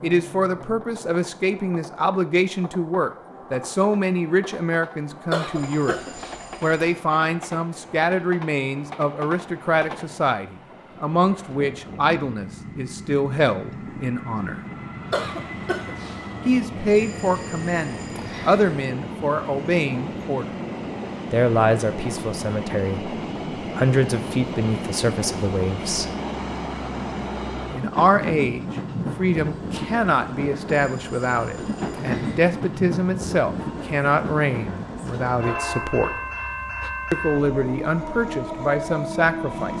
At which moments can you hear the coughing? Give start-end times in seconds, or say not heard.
5.3-6.3, 15.1-16.3, 35.5-36.5.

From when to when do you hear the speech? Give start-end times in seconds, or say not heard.
0.0-6.0, 6.6-14.6, 16.4-20.4, 21.3-26.1, 27.7-36.1, 37.1-39.7.